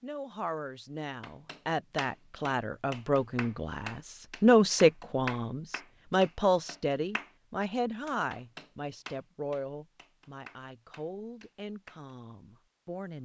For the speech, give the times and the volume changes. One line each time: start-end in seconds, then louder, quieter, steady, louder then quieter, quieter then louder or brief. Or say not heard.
0.0-13.2 louder then quieter.